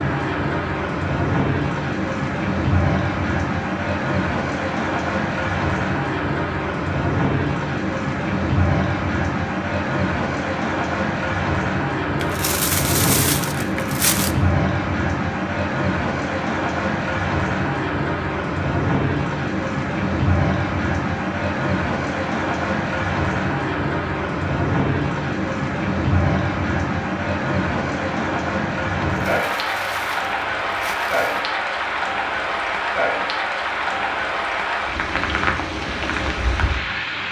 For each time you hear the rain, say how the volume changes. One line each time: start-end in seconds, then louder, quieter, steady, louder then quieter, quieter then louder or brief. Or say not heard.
0.0-37.2 steady.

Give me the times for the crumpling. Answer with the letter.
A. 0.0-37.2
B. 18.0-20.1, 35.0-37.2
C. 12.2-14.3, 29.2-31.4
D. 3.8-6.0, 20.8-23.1
C.